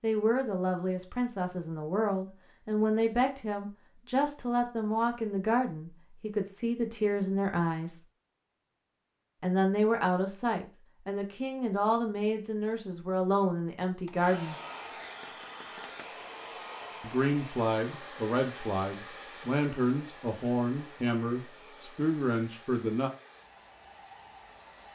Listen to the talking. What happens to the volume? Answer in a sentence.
The volume of the talking stays about the same.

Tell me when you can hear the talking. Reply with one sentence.
The talking can be heard from 0.0 to 8.0 s, from 9.4 to 14.6 s and from 17.0 to 23.1 s.